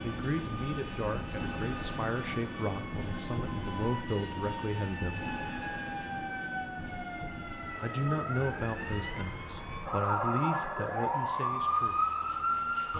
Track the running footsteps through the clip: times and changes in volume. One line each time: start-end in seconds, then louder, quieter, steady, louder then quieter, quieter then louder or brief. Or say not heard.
not heard.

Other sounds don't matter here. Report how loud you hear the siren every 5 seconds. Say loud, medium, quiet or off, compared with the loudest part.
quiet, medium, loud.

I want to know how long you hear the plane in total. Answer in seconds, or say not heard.
13 s.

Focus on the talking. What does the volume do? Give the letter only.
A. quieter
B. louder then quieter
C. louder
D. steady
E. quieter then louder
D.